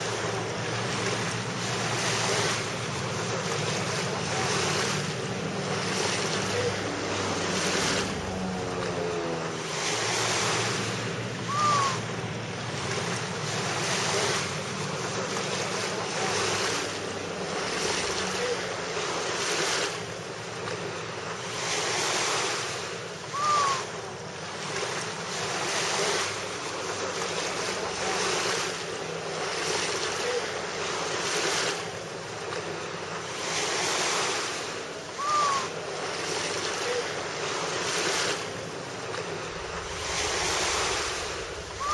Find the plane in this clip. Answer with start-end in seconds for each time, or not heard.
0.0-41.9.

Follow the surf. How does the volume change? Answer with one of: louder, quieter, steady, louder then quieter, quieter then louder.
steady.